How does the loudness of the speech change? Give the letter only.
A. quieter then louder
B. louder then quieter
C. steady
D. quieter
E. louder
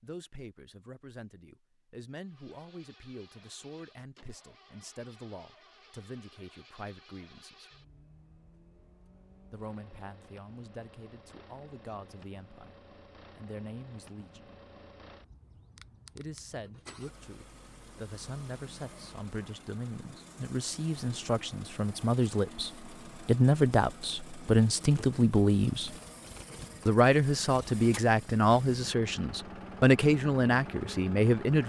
E.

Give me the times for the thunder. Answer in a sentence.
The thunder can't be heard in this clip.